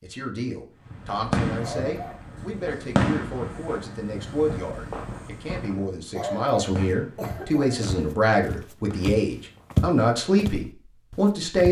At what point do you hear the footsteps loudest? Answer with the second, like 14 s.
10 s.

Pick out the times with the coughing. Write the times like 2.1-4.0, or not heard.
1.6-2.2, 6.2-8.0.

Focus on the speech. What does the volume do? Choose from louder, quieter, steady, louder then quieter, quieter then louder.
louder.